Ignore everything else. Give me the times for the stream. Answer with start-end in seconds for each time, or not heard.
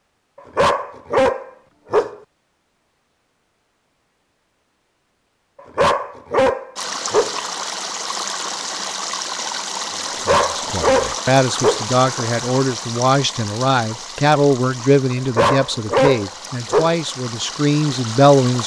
6.8-18.6.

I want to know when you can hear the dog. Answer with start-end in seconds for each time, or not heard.
0.6-2.1, 5.8-7.4, 10.2-11.8, 15.3-16.9.